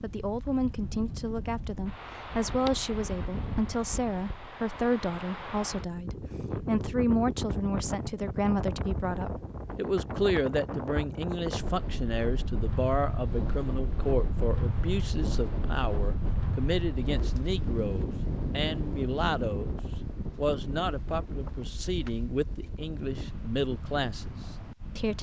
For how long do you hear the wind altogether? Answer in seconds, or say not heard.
25 s.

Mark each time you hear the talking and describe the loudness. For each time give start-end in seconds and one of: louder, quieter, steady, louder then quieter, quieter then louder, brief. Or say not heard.
0.0-25.1 steady.